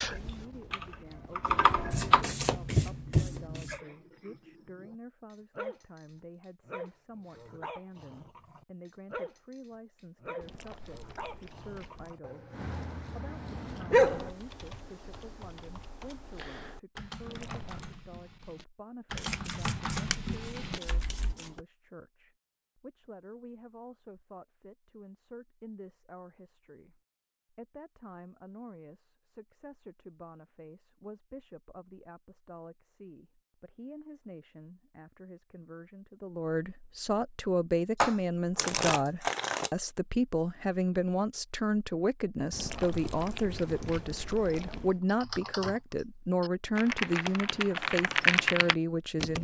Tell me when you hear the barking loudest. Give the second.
14 s.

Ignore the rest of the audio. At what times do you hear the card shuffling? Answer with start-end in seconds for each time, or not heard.
1.9-3.8, 19.1-21.6, 38.0-39.7.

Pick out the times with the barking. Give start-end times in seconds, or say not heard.
3.6-14.3.